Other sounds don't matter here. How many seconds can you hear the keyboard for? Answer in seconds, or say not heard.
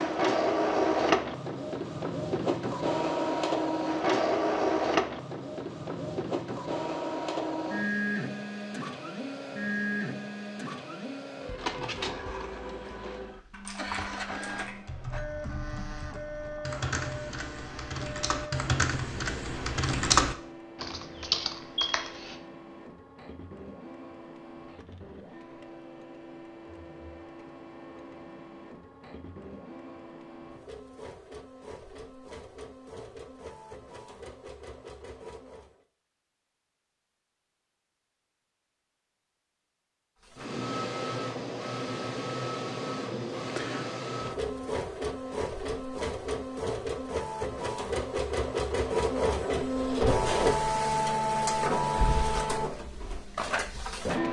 9 s.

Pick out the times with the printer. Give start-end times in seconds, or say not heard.
0.0-35.9, 40.2-54.2.